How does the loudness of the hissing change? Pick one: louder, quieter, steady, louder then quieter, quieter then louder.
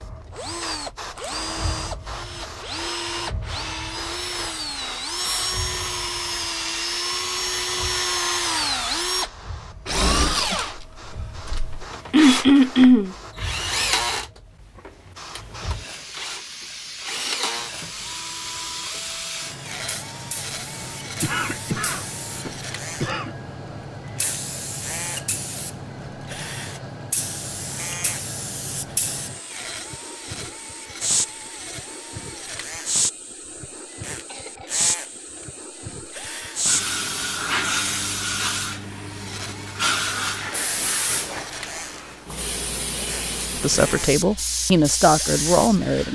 louder.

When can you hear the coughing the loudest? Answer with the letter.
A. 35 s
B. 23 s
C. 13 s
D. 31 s
C.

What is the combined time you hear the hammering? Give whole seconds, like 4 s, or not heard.
not heard.